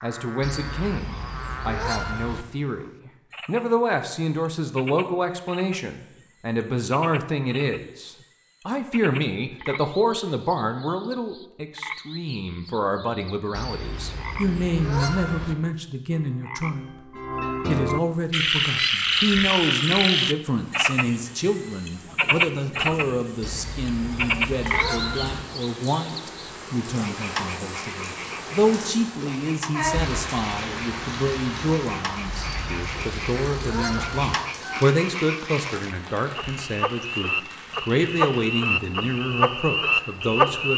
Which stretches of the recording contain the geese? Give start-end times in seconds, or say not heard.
0.4-2.5, 13.5-15.6, 23.4-25.4, 32.4-34.3.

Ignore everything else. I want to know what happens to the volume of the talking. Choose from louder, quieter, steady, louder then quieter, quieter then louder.
steady.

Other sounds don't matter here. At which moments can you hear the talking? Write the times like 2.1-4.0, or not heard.
0.0-16.9, 17.6-40.7.